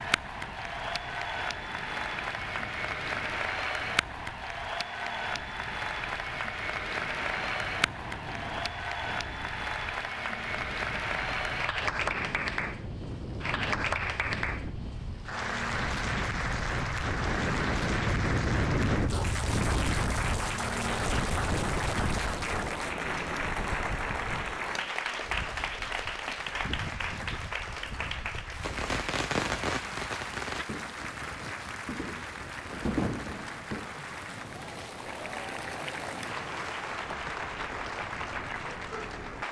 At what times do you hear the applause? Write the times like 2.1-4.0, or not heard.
0.0-39.4.